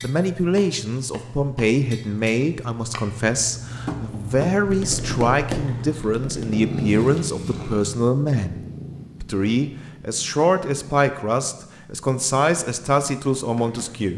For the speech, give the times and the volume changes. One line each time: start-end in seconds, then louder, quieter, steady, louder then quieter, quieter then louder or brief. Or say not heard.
0.0-14.1 steady.